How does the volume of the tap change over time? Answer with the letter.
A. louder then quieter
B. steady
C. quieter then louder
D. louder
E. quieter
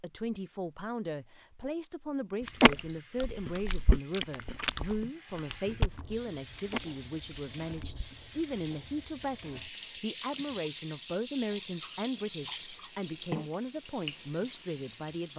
D.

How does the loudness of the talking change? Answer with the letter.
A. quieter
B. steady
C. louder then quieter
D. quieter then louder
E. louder
B.